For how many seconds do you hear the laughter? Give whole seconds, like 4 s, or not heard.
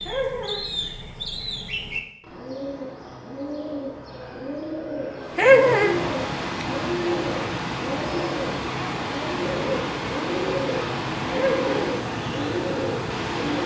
2 s.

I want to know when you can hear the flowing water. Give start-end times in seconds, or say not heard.
5.2-13.6.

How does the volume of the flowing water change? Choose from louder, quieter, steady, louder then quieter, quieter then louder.
steady.